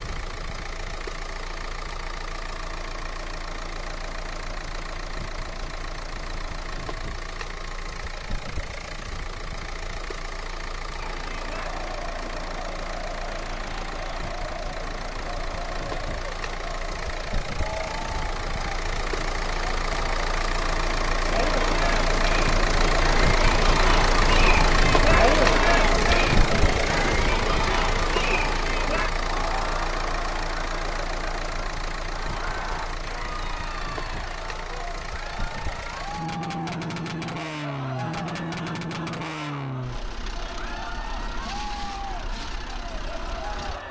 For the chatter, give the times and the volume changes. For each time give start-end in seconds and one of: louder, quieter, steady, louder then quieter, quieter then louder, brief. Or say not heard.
10.9-43.8 louder then quieter.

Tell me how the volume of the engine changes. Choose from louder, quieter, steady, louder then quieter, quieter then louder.
louder then quieter.